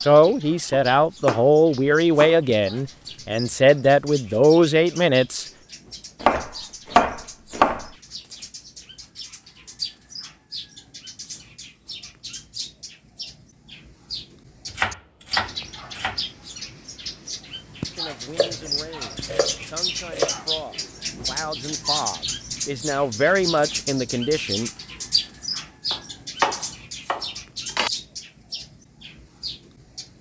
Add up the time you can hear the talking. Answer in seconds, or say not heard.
12 s.